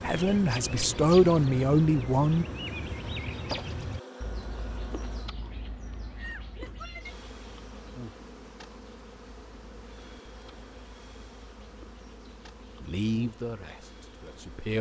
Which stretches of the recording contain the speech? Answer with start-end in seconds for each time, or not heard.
0.0-2.5, 12.8-14.7.